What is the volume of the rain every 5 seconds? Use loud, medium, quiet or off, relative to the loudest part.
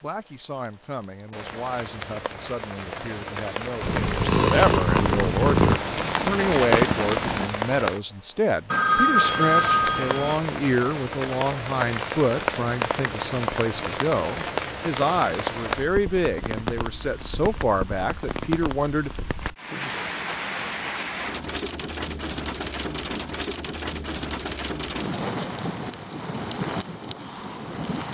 medium, loud, loud, loud, loud, loud.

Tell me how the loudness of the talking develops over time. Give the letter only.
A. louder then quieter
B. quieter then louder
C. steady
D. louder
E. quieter
D.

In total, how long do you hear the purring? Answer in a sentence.
The purring can be heard for 4 seconds in total.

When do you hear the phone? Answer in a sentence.
You can hear the phone from 8.7 to 10.3 s.